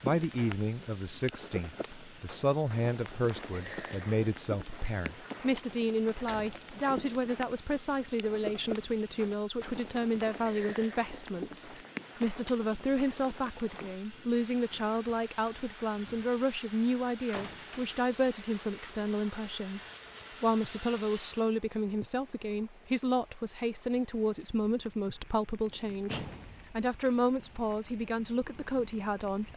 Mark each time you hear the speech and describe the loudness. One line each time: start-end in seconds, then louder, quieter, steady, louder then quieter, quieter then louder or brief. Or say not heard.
0.0-29.5 steady.